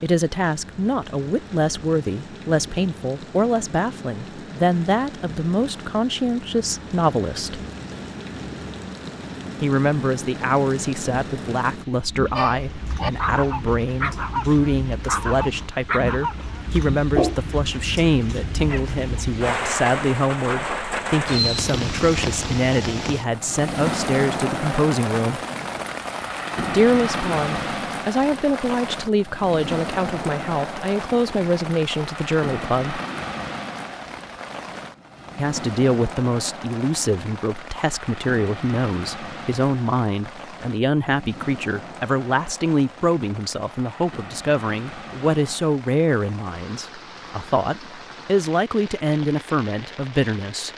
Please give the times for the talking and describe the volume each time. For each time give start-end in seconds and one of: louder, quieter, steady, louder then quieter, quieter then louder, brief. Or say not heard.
0.0-7.6 steady
9.6-25.4 steady
26.6-33.0 steady
35.4-50.7 steady.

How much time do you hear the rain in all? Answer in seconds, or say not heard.
51 s.